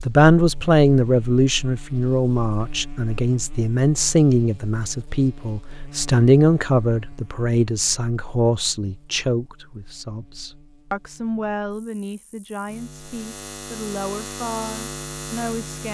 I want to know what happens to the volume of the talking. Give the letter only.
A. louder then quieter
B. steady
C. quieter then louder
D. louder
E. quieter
E.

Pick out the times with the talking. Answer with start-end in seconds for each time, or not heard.
0.0-15.8.